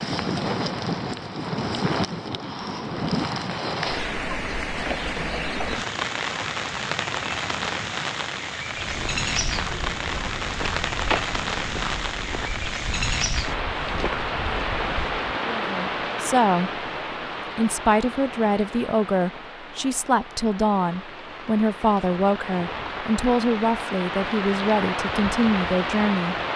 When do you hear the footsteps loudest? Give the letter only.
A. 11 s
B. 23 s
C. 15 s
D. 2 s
A.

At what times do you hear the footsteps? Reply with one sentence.
You can hear the footsteps from 8.8 to 15.3 s.